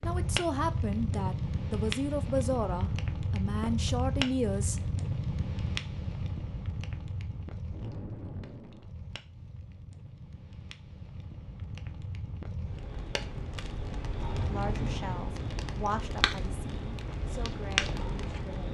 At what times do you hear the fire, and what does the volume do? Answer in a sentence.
You can hear the fire from 0.0 to 18.6 s, getting quieter then louder.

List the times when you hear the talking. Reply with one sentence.
You can hear the talking from 0.0 to 4.8 s and from 14.4 to 18.6 s.